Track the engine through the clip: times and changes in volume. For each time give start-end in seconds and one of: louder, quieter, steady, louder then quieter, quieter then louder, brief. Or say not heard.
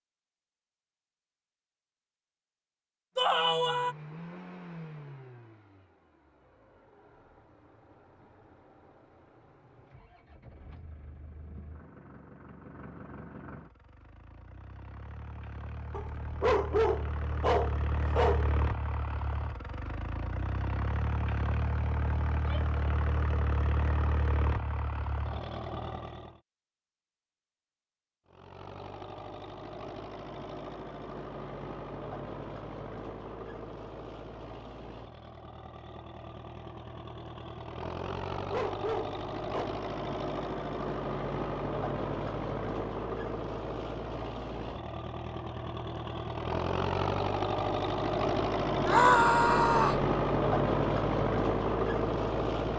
3.1-26.4 quieter then louder
28.2-52.7 louder.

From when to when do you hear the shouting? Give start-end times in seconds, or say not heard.
3.1-4.0, 22.4-22.8, 48.9-50.0.